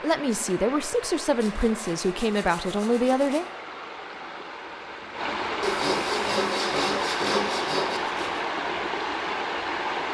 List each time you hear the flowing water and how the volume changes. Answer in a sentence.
The flowing water can be heard from 0.0 to 10.0 s, getting louder.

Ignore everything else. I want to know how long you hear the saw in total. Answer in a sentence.
The saw can be heard for 5 seconds in total.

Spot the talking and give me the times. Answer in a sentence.
You can hear the talking from 0.0 to 3.5 s.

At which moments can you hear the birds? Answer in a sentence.
You can't hear the birds here.